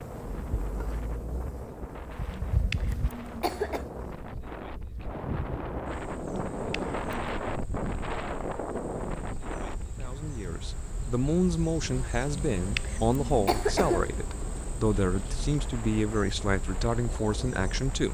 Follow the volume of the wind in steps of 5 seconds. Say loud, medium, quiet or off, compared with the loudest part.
medium, loud, medium, medium.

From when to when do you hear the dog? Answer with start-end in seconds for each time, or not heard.
not heard.